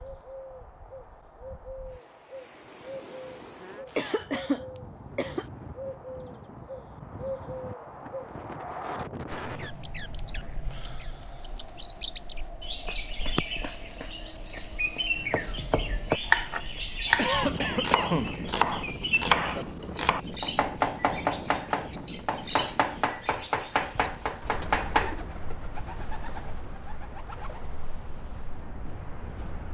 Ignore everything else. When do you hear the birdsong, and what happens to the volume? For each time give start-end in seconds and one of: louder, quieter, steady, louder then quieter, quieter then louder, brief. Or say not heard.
0.0-29.7 louder then quieter.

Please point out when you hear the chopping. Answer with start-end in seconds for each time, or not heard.
15.2-25.1.